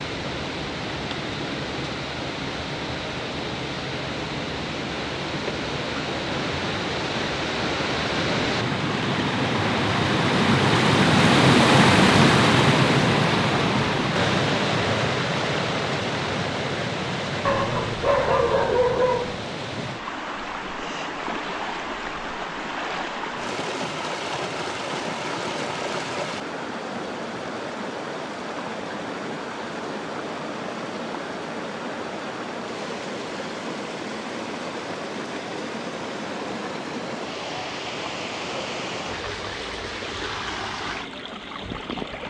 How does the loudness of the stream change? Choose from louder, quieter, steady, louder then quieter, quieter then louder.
louder then quieter.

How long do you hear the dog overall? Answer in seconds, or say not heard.
2 s.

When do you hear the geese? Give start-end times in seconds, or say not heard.
not heard.